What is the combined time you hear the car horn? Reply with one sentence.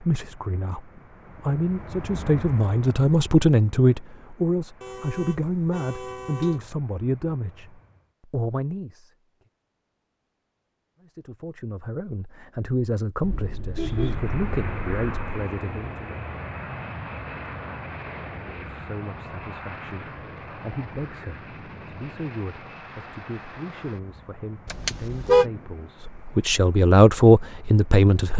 You can hear the car horn for 5 seconds altogether.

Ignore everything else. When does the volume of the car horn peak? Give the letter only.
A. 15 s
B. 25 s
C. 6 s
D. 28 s
B.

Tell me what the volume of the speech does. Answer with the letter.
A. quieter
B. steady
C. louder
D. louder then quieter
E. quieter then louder
E.